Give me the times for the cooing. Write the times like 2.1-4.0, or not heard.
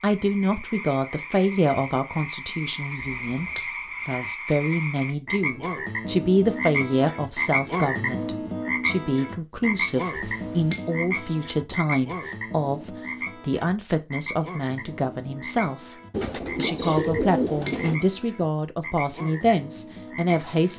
16.1-18.0.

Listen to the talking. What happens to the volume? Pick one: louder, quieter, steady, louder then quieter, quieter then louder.
steady.